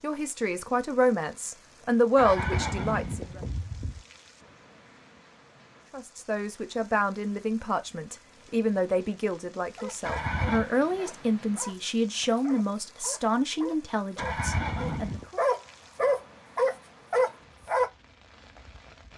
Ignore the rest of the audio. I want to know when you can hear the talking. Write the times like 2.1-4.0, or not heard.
0.0-3.4, 5.9-15.4.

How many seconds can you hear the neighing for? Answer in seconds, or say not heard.
4 s.